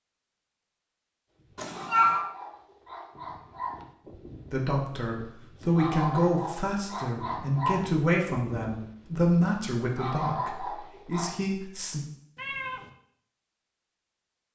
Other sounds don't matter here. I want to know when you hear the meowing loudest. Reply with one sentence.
The loudest moment of the meowing is at 2 seconds.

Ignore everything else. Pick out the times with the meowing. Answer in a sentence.
You can hear the meowing from 1.6 to 2.2 s and from 12.3 to 12.9 s.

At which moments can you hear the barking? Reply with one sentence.
You can hear the barking from 1.4 to 11.4 s.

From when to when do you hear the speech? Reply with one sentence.
The speech can be heard from 4.5 to 12.1 s.